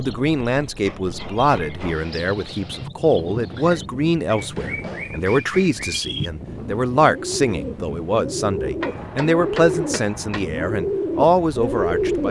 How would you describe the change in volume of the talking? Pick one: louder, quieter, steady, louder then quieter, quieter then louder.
steady.